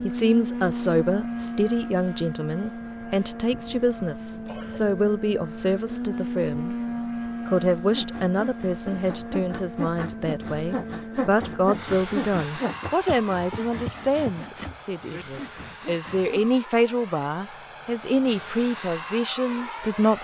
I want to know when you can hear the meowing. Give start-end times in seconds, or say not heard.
not heard.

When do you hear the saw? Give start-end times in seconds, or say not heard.
7.8-16.4.